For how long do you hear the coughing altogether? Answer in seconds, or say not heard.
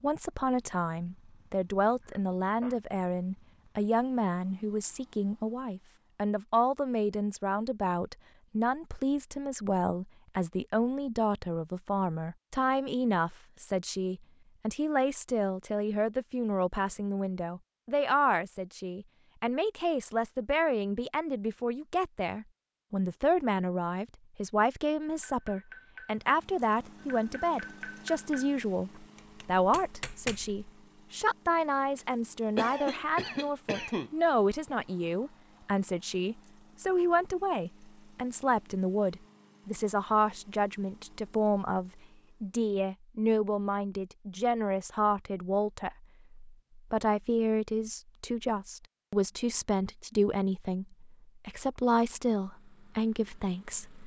2 s.